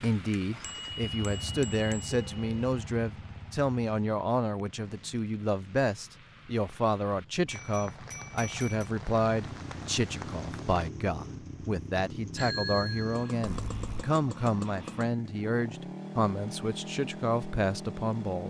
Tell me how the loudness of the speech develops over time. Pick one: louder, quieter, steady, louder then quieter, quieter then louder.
steady.